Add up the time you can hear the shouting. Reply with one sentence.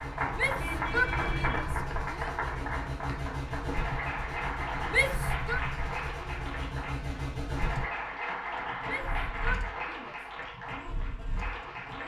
The shouting can be heard for 4 seconds in total.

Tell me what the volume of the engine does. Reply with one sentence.
The volume of the engine goes down.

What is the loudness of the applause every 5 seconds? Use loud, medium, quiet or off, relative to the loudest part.
loud, loud, medium.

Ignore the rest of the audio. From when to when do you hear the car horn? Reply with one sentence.
The car horn can be heard from 0.4 to 1.9 s.